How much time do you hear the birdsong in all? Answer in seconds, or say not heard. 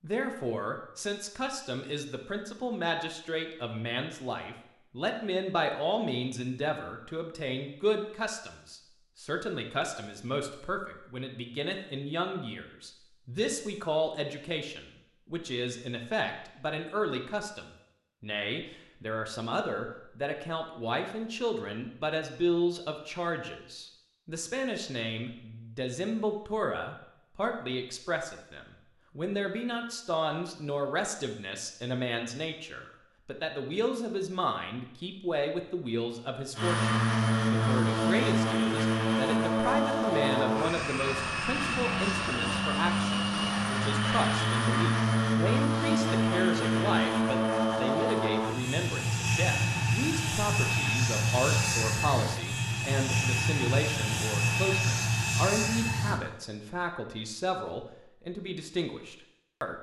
not heard.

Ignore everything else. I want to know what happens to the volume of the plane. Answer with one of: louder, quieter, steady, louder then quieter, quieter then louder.
steady.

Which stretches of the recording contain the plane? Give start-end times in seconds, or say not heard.
36.5-56.2.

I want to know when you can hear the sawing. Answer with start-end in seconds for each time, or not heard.
not heard.